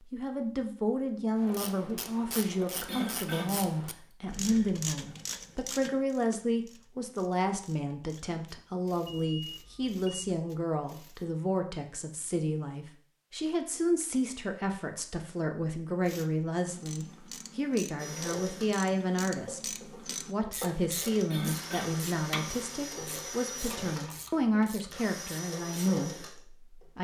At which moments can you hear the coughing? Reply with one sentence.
You can hear the coughing from 2.9 to 3.7 s and from 21.3 to 22.1 s.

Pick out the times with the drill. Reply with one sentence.
You can hear the drill from 17.9 to 26.9 s.